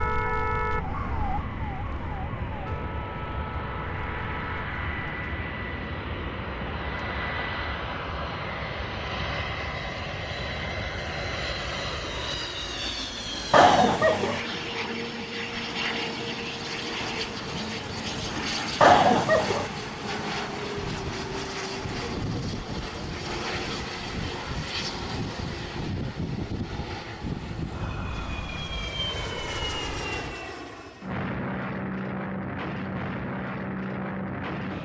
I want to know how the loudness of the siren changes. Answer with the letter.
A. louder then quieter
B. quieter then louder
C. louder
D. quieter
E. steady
D.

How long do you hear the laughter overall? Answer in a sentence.
The laughter can be heard for 2 seconds in total.